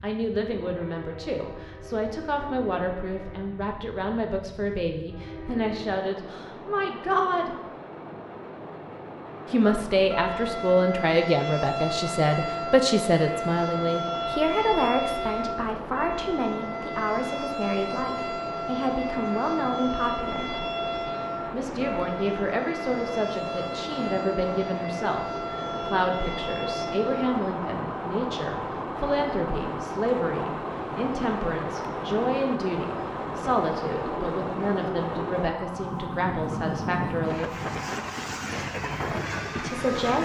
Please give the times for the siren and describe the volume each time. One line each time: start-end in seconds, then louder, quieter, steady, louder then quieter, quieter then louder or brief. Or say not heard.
9.6-40.2 quieter.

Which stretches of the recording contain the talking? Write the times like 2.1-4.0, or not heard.
0.0-7.5, 9.5-20.6, 21.5-37.5, 39.5-40.2.